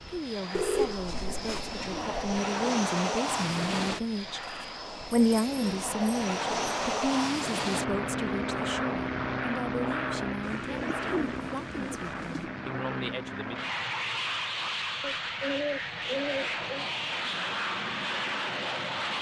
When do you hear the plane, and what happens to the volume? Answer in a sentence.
You can hear the plane from 0.0 to 19.1 s, at a steady volume.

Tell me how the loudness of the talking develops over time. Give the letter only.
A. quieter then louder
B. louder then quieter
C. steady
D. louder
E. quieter
B.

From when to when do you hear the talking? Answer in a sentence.
The talking can be heard from 0.0 to 13.6 s.